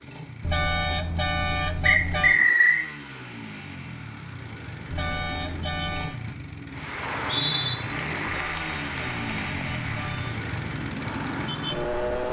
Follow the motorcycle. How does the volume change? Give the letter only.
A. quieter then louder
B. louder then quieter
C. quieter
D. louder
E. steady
D.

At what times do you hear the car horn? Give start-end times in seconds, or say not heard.
0.4-2.4, 4.9-6.2, 8.2-10.3.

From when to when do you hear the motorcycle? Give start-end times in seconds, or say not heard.
0.0-12.2.